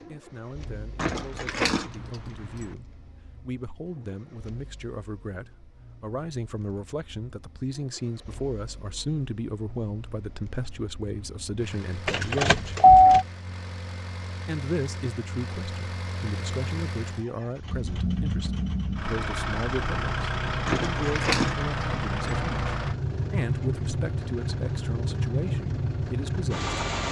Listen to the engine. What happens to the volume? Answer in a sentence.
The loudness of the engine goes up.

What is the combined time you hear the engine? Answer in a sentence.
The engine can be heard for 27 seconds in total.